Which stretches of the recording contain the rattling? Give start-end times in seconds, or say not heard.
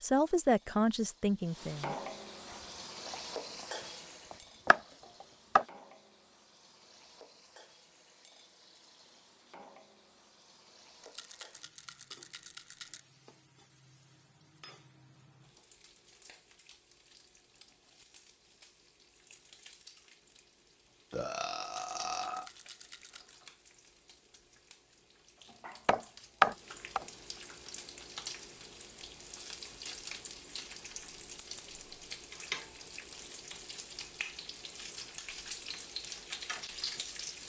11.0-13.0, 21.6-23.4.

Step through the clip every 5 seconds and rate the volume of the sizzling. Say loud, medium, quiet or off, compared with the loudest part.
loud, quiet, quiet, quiet, quiet, medium, loud, loud.